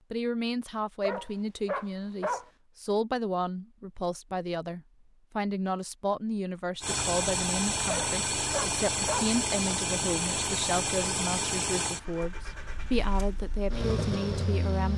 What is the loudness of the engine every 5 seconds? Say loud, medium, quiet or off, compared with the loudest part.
off, loud, loud.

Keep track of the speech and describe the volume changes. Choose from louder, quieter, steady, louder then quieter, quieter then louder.
steady.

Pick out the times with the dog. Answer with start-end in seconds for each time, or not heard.
1.0-2.5, 7.8-9.3.